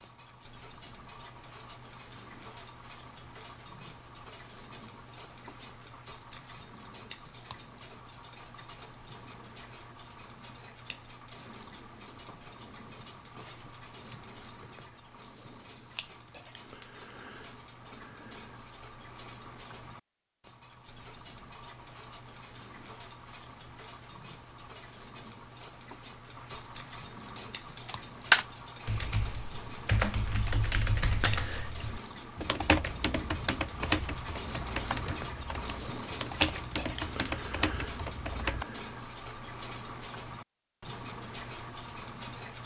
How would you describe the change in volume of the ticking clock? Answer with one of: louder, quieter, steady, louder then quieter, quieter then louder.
louder.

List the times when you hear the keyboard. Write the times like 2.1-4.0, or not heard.
27.4-38.6.